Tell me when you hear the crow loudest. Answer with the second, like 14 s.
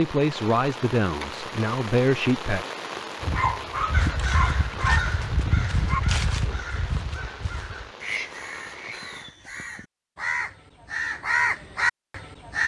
11 s.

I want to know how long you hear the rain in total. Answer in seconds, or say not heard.
9 s.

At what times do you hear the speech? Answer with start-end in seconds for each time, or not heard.
0.0-2.6.